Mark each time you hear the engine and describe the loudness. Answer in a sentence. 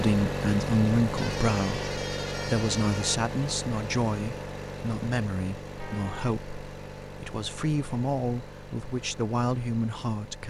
The engine can be heard from 0.0 to 10.4 s, getting quieter.